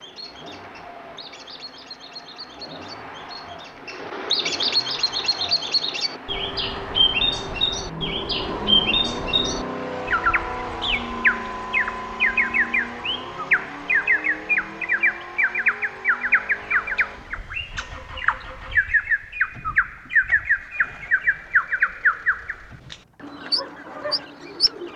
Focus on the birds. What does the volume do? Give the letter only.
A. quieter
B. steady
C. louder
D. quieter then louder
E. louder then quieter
C.